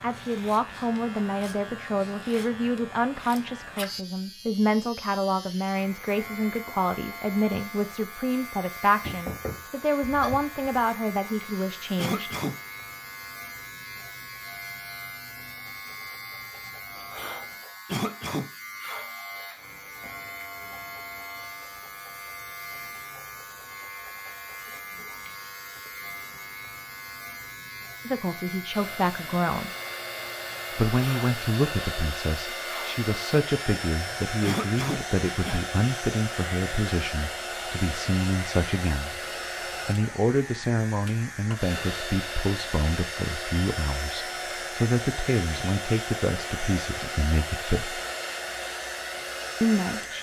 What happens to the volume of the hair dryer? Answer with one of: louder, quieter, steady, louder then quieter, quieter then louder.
steady.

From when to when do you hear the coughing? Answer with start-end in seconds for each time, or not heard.
11.9-12.6, 17.9-18.5, 34.4-35.6.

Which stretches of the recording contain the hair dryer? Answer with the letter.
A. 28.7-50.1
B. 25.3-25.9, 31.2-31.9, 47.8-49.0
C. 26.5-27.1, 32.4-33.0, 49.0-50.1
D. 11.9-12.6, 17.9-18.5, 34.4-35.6
A.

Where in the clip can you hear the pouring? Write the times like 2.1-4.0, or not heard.
not heard.